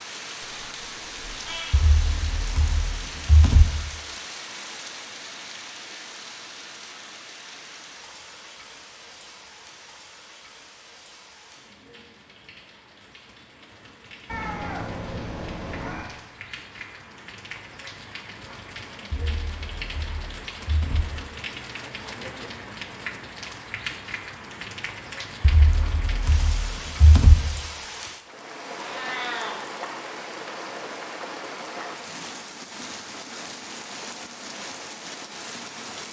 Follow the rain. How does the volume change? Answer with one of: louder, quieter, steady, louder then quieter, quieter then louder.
quieter then louder.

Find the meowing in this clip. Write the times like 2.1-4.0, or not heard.
0.5-1.8, 14.2-16.1, 28.8-29.6.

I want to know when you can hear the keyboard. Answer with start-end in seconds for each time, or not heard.
1.7-3.6, 19.1-21.1, 25.4-27.4.